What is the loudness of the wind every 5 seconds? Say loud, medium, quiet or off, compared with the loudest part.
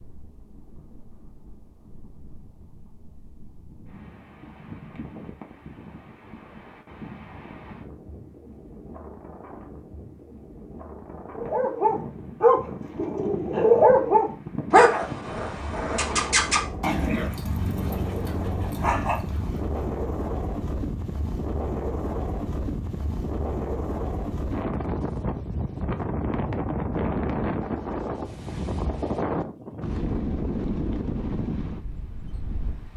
quiet, quiet, medium, medium, loud, loud, loud.